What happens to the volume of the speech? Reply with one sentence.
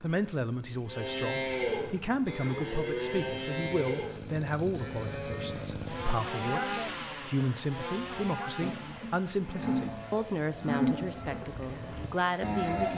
The loudness of the speech stays about the same.